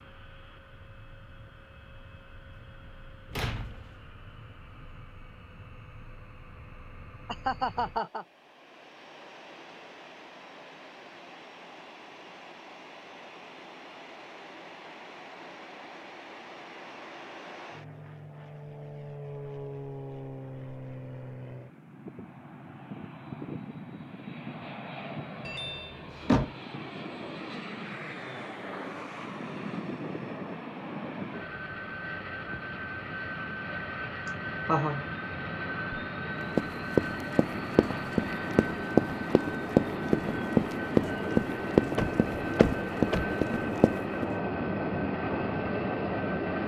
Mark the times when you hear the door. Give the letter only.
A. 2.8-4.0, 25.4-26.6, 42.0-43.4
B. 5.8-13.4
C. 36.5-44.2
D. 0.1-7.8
A.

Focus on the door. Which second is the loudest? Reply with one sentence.
The loudest moment of the door is at 26 seconds.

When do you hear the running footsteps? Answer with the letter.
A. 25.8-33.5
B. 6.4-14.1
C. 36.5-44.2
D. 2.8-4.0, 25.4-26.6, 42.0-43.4
C.